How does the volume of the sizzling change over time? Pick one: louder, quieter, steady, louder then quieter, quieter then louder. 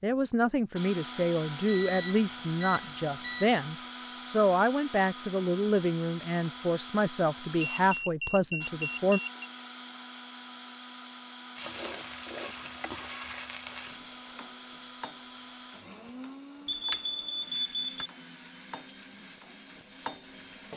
quieter then louder.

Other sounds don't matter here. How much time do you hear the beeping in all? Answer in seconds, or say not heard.
5 s.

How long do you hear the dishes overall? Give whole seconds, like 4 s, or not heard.
not heard.